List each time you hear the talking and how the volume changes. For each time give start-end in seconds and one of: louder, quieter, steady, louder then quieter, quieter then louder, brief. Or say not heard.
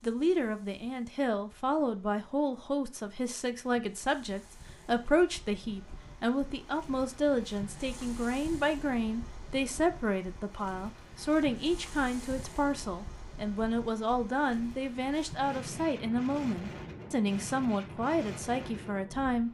0.0-19.4 steady.